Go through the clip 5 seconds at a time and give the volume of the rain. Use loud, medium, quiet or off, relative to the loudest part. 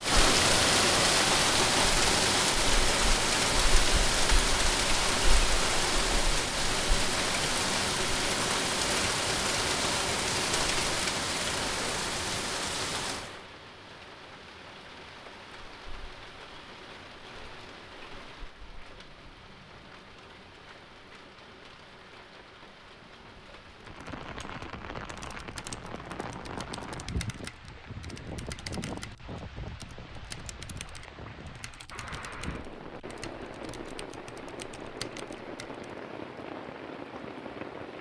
loud, loud, medium, quiet, quiet, quiet, quiet, quiet.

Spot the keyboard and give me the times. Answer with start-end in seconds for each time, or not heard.
23.9-35.9.